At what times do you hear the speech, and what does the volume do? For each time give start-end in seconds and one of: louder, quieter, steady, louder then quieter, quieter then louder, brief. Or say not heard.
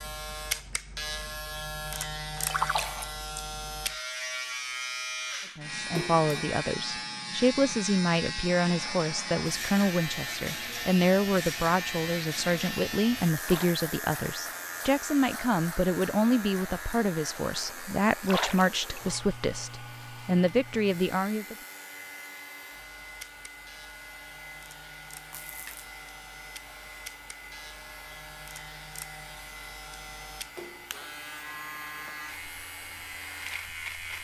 5.5-21.6 steady.